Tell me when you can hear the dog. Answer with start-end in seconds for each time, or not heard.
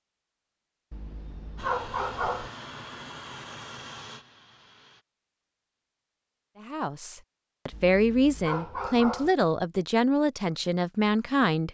0.9-2.5, 7.7-9.3.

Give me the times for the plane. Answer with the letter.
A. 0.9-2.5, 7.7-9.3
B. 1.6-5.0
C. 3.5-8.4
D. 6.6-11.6
B.